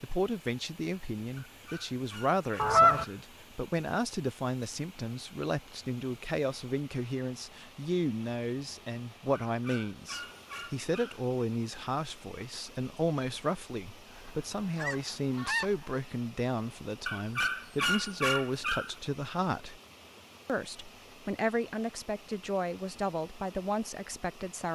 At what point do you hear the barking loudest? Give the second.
18 s.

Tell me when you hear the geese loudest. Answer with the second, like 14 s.
3 s.